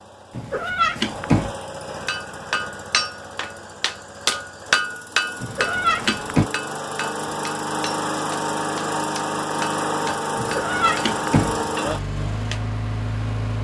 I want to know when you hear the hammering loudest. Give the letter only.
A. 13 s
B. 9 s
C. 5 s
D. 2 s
C.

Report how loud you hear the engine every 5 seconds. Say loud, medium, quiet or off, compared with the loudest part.
medium, loud, loud.